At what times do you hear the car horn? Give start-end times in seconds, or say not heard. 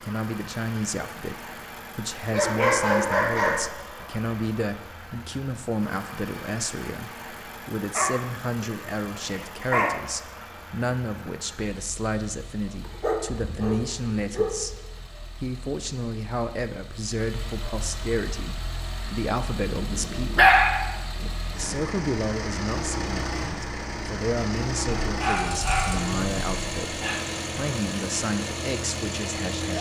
not heard.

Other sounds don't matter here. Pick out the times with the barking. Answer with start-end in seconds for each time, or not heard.
2.3-3.7, 7.9-9.9, 12.8-14.8, 19.6-21.2, 25.1-27.2.